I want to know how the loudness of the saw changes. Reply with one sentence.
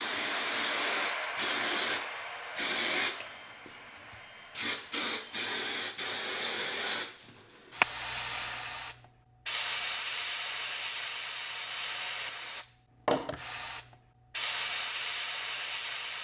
The loudness of the saw goes down.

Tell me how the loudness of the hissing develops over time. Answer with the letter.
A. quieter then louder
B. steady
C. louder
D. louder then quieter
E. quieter
B.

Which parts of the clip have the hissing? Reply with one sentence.
The hissing can be heard from 0.0 to 16.1 s.